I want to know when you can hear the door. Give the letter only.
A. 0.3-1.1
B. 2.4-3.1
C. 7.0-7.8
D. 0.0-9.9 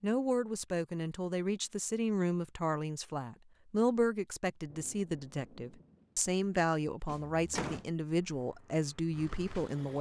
C.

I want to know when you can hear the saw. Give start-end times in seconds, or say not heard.
not heard.